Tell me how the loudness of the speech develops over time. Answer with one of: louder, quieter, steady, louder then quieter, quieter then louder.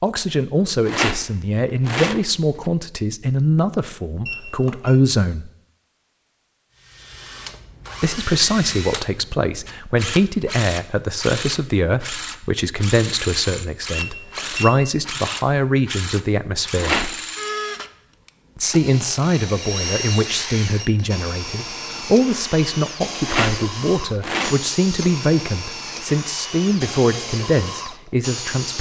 steady.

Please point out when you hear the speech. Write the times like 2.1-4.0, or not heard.
0.0-5.5, 8.0-17.0, 18.6-28.7.